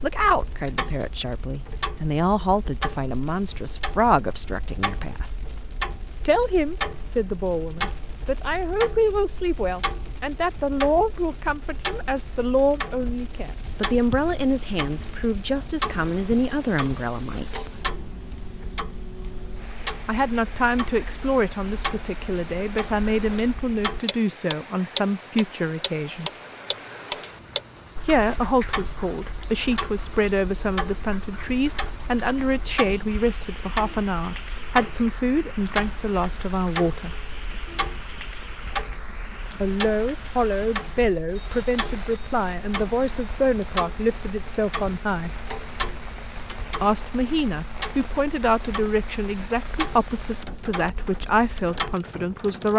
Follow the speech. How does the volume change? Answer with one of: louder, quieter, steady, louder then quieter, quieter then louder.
steady.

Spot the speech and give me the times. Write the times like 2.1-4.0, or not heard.
0.0-5.3, 6.2-17.8, 20.1-26.3, 28.1-37.1, 39.6-45.4, 46.8-52.7.